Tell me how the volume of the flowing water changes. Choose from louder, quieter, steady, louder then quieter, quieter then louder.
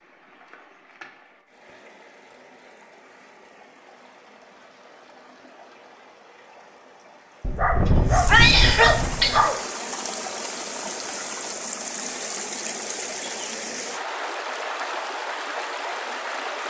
louder.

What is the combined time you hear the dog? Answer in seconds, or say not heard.
2 s.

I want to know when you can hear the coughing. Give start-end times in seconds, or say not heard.
8.2-9.6.